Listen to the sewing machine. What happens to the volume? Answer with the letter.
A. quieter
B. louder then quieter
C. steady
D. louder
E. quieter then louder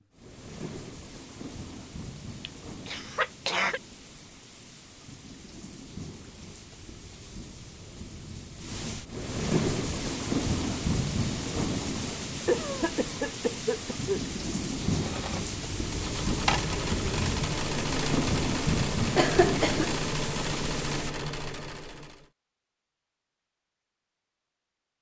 C.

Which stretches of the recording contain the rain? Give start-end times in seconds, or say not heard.
0.0-21.1.